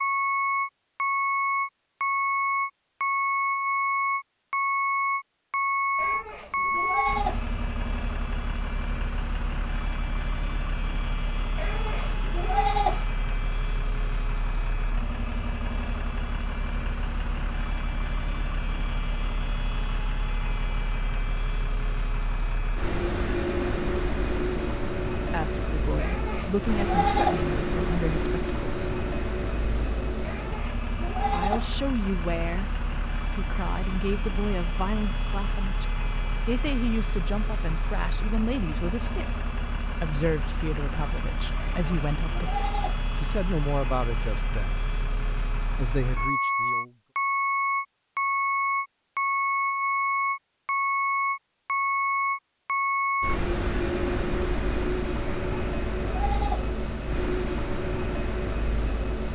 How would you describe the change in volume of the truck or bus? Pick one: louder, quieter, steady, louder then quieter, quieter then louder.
quieter then louder.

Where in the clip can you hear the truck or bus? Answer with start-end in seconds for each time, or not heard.
0.0-59.3.